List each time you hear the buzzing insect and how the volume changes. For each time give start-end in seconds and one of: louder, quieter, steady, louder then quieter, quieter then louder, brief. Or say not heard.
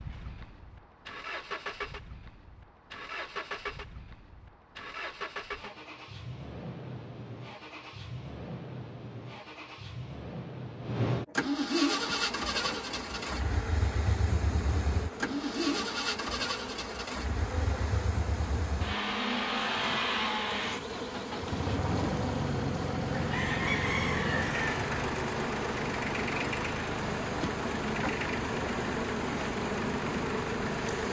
11.9-31.0 louder.